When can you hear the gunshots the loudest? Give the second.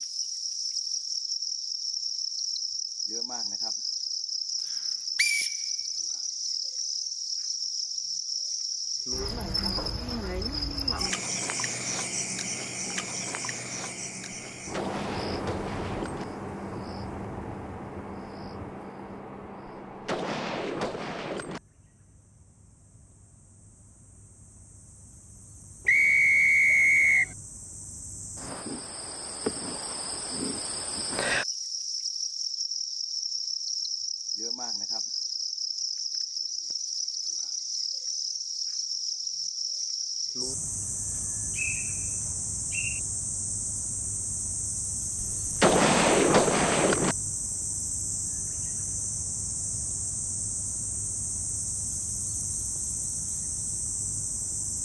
46 s.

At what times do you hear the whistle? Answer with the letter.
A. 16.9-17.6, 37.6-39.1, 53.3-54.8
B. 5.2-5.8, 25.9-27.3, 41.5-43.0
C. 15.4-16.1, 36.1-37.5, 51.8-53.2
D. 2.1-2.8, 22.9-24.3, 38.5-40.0
B.